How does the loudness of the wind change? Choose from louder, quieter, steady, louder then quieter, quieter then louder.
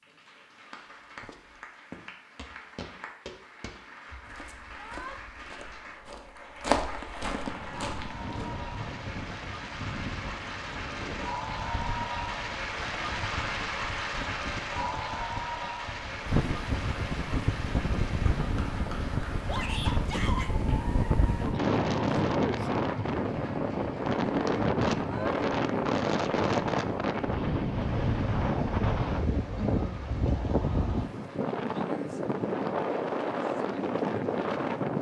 louder.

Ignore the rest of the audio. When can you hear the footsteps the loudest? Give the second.
7 s.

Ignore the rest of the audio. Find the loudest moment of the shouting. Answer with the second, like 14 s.
20 s.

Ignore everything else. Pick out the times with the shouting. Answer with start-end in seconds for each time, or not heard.
4.7-5.2, 19.4-20.5, 24.9-25.4.